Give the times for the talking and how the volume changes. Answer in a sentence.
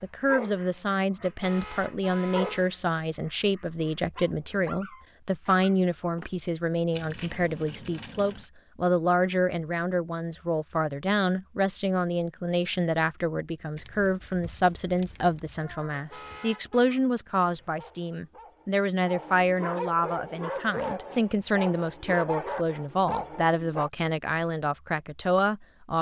The talking can be heard from 0.0 to 25.9 s, at a steady volume.